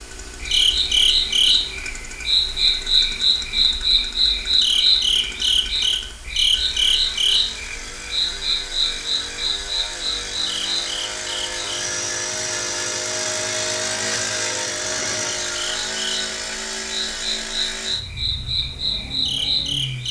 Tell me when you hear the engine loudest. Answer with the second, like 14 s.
14 s.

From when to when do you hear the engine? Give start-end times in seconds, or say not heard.
0.0-20.0.